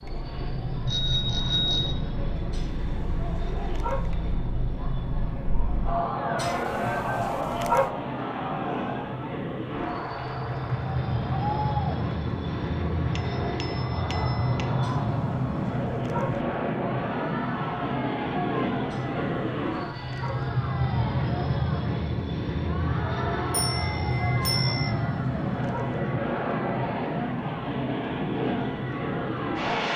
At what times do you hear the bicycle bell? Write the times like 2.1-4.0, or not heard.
0.8-1.9, 13.2-14.7, 23.5-24.9.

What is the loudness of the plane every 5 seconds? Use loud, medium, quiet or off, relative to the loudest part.
medium, medium, loud, loud, loud, loud.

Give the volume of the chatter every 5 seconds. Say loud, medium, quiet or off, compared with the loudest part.
medium, loud, loud, medium, medium, medium.